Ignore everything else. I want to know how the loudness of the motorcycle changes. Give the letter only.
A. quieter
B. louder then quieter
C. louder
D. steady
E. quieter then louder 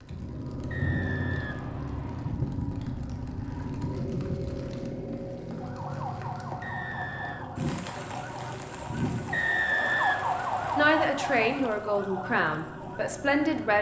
A.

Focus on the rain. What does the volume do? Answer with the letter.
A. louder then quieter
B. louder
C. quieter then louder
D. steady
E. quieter
E.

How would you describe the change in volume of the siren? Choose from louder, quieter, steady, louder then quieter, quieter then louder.
louder then quieter.